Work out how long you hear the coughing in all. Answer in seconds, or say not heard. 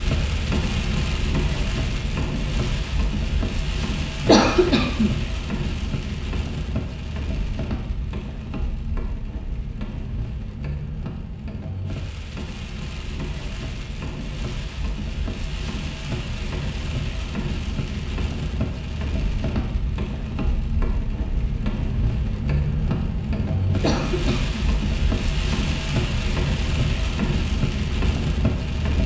2 s.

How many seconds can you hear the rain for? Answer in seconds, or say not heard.
29 s.